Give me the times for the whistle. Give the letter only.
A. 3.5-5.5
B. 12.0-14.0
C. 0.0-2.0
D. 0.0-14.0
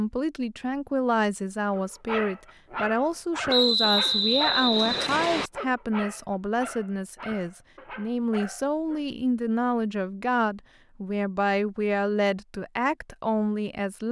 A.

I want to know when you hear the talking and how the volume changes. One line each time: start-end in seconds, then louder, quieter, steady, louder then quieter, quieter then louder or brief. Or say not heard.
0.0-14.0 steady.